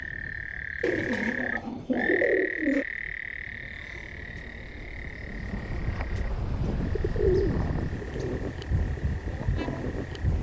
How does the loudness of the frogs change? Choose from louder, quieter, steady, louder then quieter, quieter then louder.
quieter.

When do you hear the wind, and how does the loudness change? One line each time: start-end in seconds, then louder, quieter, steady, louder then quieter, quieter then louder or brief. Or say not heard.
0.0-10.3 louder.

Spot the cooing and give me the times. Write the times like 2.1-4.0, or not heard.
0.8-2.9, 6.7-8.4.